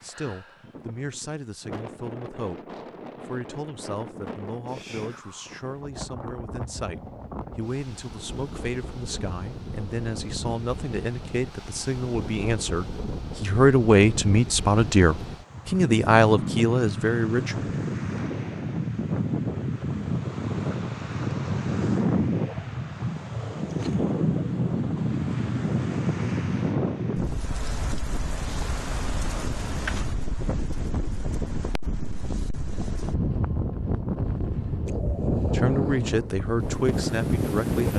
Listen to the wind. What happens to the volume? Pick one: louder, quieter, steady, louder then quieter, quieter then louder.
louder.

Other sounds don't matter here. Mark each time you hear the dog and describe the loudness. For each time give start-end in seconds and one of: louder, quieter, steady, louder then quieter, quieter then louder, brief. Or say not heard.
not heard.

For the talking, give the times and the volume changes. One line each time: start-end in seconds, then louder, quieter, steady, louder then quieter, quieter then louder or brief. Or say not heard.
0.0-17.7 louder
35.5-37.9 brief.